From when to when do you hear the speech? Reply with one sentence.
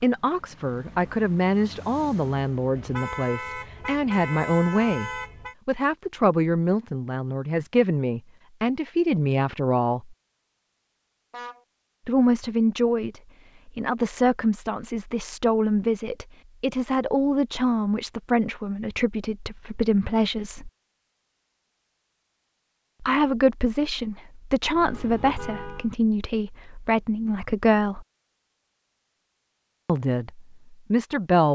The speech can be heard from 0.0 to 10.2 s, from 12.1 to 20.7 s, from 23.0 to 28.1 s and from 29.9 to 31.4 s.